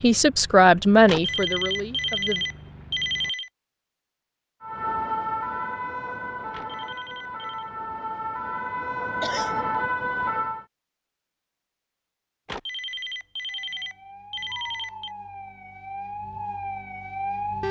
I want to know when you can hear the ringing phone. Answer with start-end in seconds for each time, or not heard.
1.1-3.5, 6.5-7.7, 12.4-15.1.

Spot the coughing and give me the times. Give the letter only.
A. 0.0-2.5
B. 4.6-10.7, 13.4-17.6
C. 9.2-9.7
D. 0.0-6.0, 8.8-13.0
C.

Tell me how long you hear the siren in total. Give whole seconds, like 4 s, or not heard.
10 s.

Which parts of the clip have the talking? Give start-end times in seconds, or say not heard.
0.0-2.5.